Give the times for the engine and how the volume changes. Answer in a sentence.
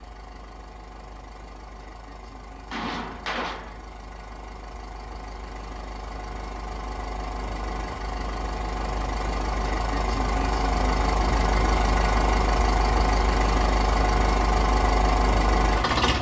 You can hear the engine from 0.0 to 16.1 s, getting louder.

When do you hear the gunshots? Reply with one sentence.
The gunshots can be heard from 2.6 to 3.8 s.